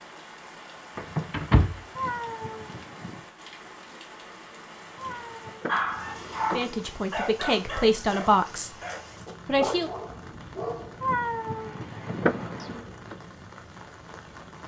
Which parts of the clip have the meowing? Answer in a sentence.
The meowing can be heard from 1.9 to 3.2 s, from 5.0 to 5.7 s and from 11.0 to 12.8 s.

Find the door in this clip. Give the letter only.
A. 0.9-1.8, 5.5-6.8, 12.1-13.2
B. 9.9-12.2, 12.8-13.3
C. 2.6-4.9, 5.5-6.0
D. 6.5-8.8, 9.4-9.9
A.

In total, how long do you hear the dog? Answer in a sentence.
You can hear the dog for 5 seconds altogether.